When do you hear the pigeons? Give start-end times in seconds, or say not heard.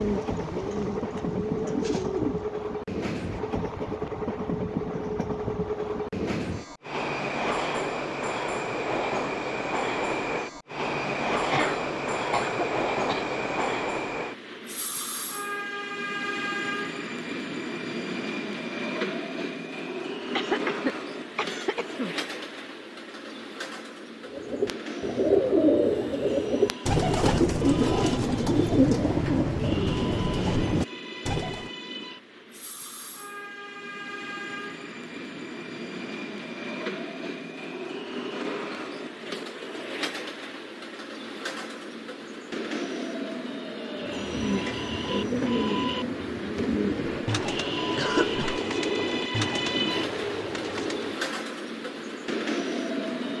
0.0-2.5, 24.2-31.7, 44.0-51.4.